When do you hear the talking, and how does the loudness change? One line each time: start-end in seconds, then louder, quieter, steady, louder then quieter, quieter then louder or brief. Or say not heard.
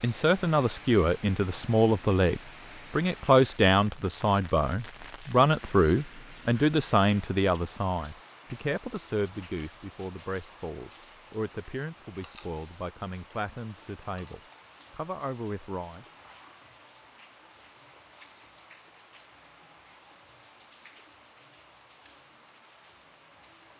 0.0-16.1 quieter.